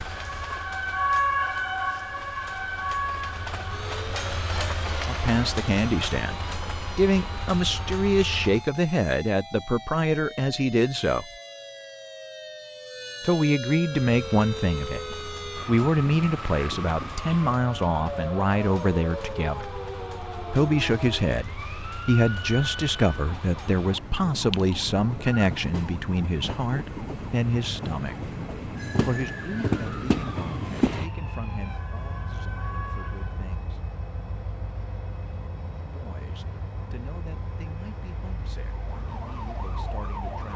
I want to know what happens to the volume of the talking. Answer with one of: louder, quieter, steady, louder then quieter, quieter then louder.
quieter.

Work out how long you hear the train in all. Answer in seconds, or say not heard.
35 s.